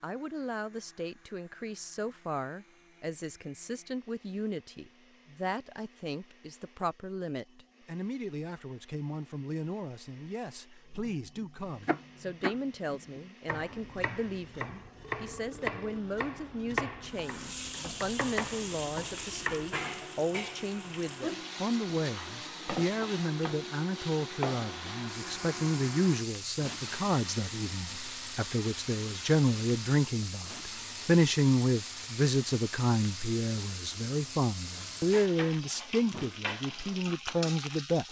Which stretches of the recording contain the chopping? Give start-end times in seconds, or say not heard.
10.9-19.8.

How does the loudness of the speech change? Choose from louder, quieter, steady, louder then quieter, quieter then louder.
louder.